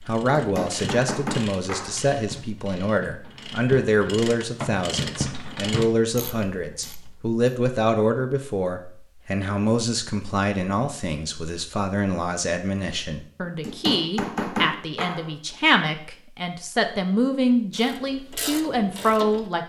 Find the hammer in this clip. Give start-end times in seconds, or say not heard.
0.1-2.0, 13.4-15.3.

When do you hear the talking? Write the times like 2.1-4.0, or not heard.
0.1-19.6.